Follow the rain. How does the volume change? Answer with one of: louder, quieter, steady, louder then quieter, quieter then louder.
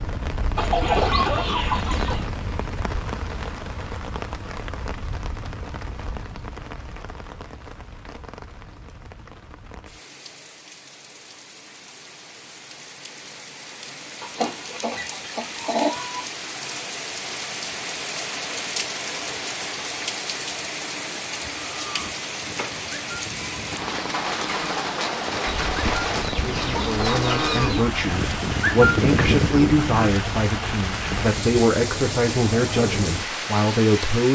quieter then louder.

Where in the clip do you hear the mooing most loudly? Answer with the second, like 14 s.
29 s.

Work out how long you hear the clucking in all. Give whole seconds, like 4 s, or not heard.
6 s.